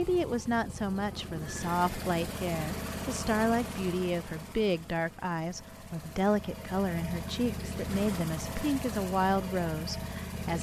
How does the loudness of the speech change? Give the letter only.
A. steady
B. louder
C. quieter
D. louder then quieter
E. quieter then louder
A.